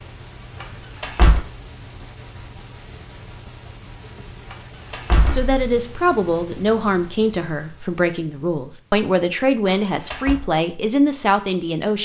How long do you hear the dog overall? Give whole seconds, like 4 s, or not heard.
not heard.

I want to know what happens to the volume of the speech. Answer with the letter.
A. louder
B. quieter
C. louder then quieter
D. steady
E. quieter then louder
D.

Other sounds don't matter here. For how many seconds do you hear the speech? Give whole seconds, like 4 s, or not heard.
7 s.